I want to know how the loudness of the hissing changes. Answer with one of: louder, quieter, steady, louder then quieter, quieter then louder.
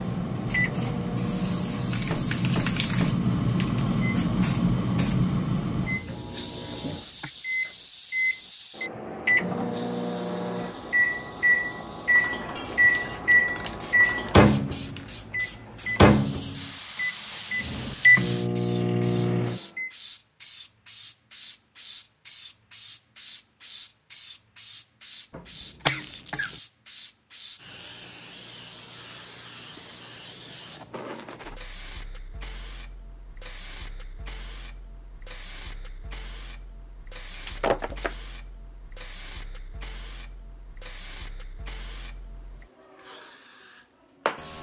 quieter.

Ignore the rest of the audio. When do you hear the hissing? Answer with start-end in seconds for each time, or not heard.
0.0-44.5.